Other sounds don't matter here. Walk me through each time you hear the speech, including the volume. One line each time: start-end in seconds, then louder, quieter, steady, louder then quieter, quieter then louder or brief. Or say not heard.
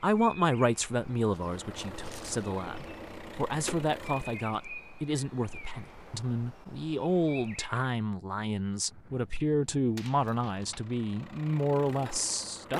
0.0-12.7 steady.